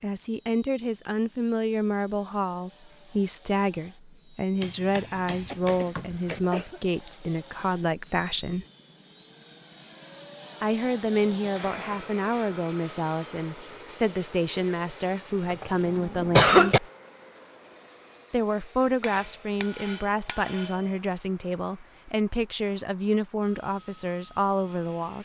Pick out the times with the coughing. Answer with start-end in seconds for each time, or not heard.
5.4-6.8, 15.5-16.8.